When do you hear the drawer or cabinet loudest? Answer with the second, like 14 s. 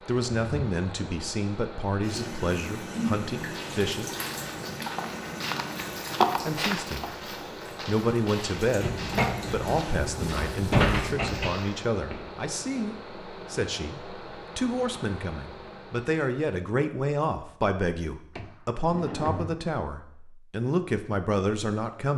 11 s.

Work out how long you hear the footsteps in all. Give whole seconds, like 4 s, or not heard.
9 s.